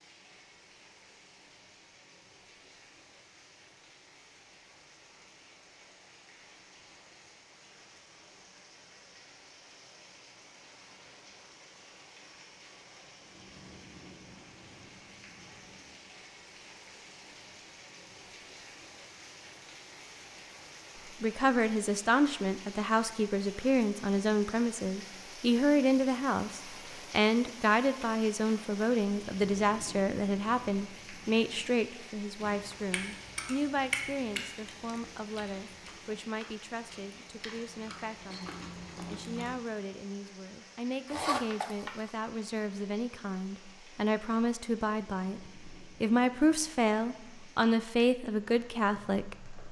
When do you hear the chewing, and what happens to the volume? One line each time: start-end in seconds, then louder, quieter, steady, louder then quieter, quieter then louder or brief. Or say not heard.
32.4-39.5 quieter then louder.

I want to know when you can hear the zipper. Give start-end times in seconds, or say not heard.
41.0-42.1.